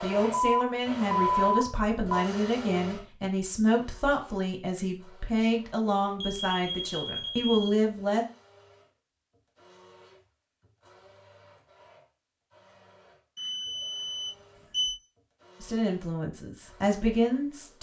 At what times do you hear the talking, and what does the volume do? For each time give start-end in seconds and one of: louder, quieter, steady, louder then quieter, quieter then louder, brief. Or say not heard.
0.0-8.2 steady
15.6-17.7 brief.